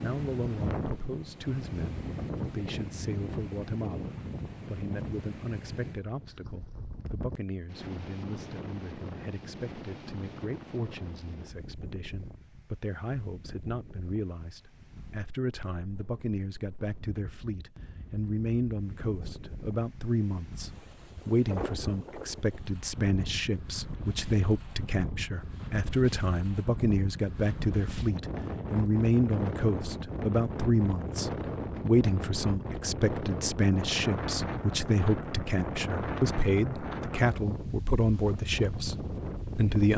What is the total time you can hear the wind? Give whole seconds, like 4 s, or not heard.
40 s.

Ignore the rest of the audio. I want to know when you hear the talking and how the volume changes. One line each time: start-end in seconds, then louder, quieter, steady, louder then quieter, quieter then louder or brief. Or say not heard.
0.0-39.9 louder.